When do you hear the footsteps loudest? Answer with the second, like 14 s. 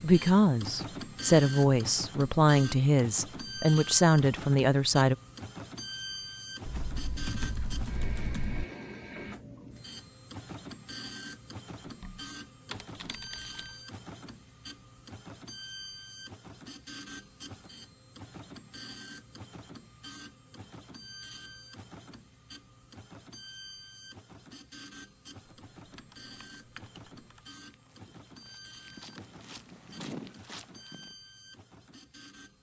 30 s.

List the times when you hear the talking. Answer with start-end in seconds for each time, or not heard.
0.0-5.2.